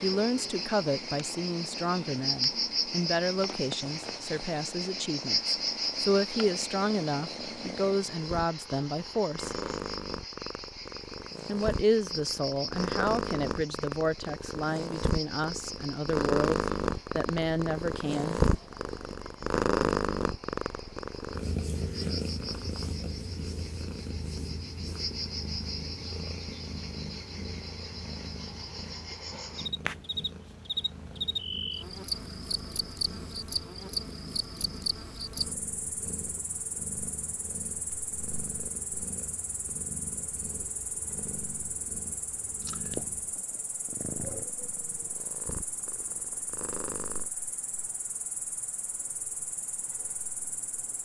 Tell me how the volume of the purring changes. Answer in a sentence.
The loudness of the purring goes up, then down.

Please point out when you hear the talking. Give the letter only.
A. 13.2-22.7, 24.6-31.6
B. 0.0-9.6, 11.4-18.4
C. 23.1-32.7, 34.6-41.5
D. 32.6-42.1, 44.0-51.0
B.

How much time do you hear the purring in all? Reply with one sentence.
You can hear the purring for 47 seconds altogether.